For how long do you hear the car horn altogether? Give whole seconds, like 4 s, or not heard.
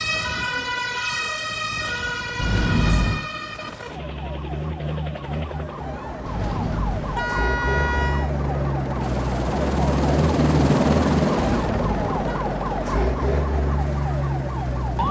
4 s.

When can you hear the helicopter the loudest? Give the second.
11 s.